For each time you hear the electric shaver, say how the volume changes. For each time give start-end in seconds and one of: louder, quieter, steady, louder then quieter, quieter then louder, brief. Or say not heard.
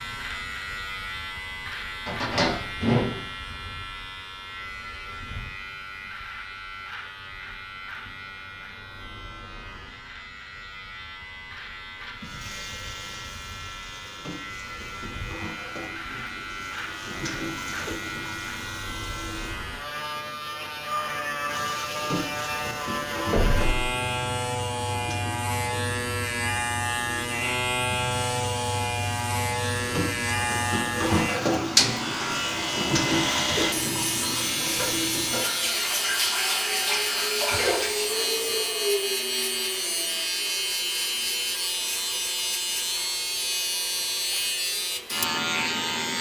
0.0-46.1 louder.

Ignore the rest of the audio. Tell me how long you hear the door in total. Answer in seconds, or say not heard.
2 s.